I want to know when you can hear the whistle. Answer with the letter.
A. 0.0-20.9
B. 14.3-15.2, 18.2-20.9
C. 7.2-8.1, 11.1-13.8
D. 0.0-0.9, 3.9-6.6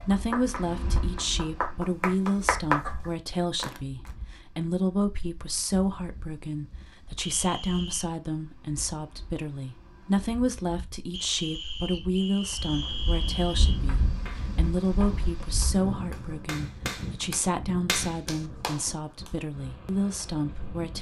C.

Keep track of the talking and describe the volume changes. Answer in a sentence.
The loudness of the talking stays about the same.